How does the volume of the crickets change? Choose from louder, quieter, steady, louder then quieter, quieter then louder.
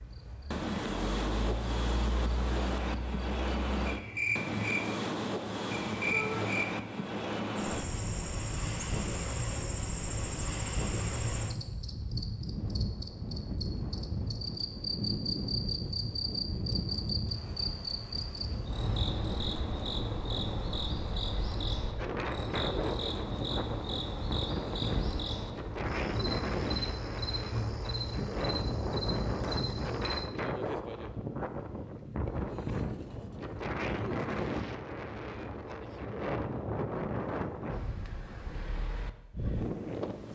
steady.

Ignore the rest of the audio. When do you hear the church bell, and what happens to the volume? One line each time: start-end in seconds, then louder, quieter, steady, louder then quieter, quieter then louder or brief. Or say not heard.
not heard.